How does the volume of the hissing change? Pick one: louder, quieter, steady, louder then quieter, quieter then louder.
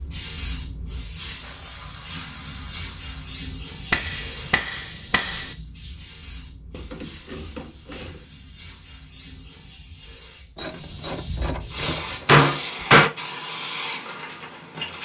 quieter then louder.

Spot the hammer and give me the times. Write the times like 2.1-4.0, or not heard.
3.9-5.5, 11.3-13.1.